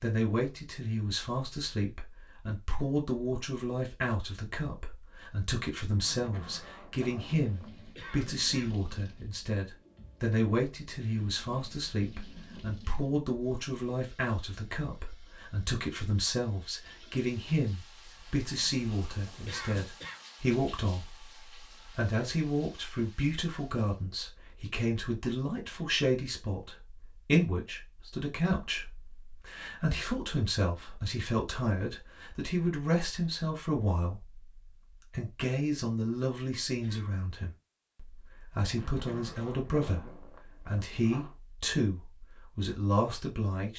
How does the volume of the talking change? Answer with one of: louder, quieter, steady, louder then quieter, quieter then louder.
steady.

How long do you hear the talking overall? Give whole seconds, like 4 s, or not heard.
43 s.